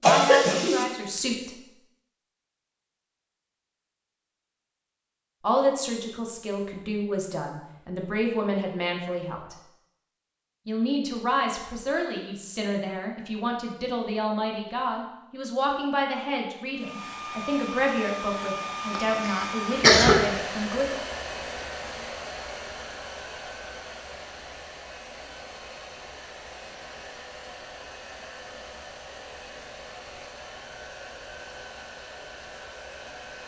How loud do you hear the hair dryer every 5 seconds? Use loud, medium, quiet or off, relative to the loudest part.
off, off, off, loud, loud, medium, medium.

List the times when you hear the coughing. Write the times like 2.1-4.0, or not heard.
0.0-0.8, 18.9-20.1.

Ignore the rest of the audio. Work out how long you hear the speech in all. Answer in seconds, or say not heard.
16 s.